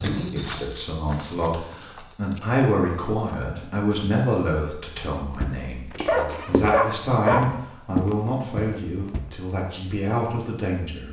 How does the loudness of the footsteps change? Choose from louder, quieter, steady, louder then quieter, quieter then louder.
quieter then louder.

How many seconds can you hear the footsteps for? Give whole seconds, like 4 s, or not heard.
7 s.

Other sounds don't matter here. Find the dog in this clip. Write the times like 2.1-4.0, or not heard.
0.0-2.0, 6.0-7.5.